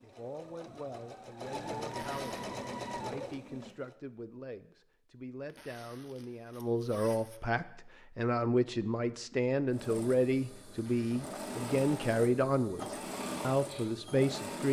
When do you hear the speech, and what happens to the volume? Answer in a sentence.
The speech can be heard from 0.0 to 14.6 s, getting louder.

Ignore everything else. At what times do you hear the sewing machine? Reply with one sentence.
You can hear the sewing machine from 0.0 to 4.0 s and from 9.7 to 14.6 s.